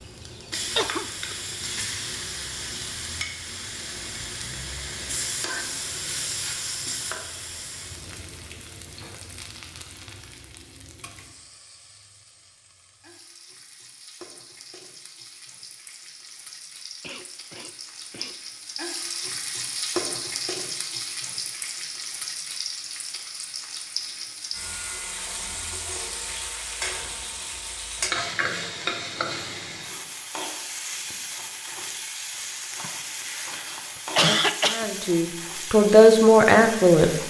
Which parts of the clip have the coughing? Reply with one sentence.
You can hear the coughing from 0.8 to 1.4 s, from 17.0 to 18.4 s and from 32.8 to 34.9 s.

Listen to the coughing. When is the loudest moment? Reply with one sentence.
The loudest moment of the coughing is at 34 seconds.